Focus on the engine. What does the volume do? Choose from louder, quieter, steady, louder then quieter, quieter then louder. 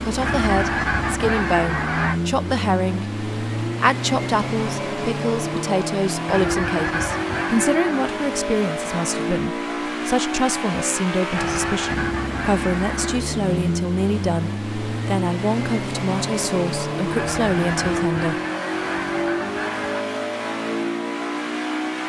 steady.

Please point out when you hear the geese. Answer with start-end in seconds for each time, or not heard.
0.2-2.2, 6.2-8.1, 11.3-13.2, 17.1-20.1.